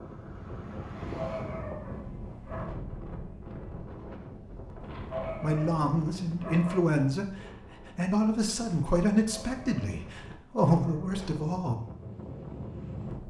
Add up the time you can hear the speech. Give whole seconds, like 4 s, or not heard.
6 s.